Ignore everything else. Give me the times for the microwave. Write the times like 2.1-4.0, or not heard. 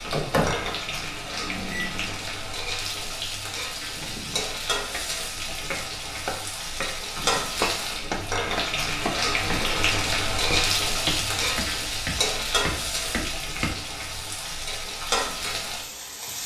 0.0-2.1.